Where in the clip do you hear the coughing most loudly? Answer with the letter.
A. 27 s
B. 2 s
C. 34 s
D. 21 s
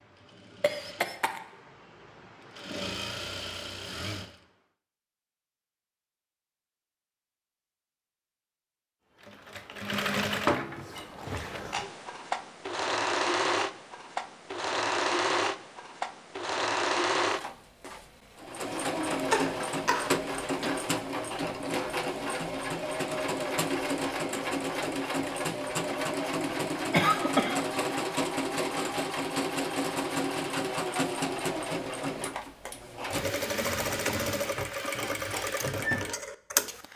A.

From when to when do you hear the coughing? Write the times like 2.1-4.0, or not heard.
0.6-1.4, 18.7-20.7, 26.9-27.6.